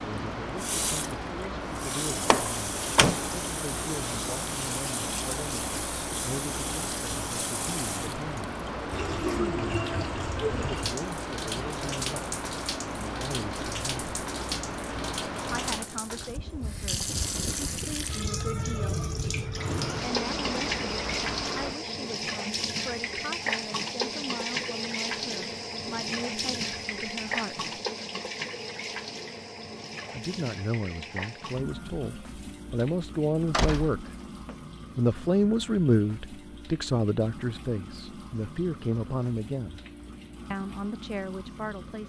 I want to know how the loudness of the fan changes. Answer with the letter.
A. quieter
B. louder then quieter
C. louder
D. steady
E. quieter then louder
D.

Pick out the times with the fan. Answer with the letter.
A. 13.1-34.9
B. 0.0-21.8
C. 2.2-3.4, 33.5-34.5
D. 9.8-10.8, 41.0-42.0
B.